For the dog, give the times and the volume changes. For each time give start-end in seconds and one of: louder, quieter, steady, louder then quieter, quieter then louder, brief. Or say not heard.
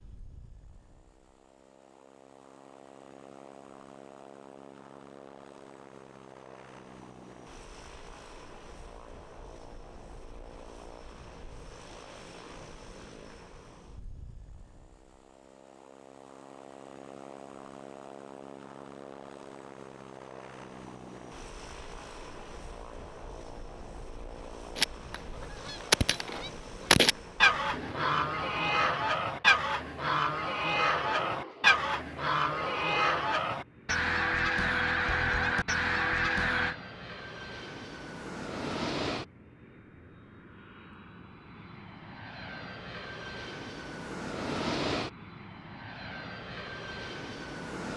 not heard.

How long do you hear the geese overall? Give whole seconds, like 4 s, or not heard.
12 s.